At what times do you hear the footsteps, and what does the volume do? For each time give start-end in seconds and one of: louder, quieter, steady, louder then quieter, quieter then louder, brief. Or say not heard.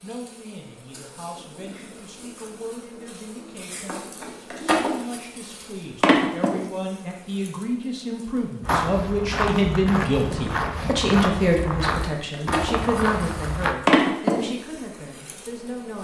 8.6-13.8 steady.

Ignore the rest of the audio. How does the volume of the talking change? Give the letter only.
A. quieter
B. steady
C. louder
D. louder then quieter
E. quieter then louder
D.